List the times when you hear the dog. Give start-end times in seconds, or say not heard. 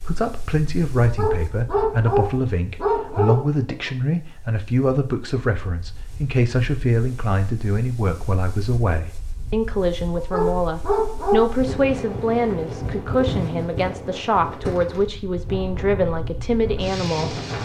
1.0-3.9, 10.2-11.6.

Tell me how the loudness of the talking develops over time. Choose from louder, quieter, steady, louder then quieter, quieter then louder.
steady.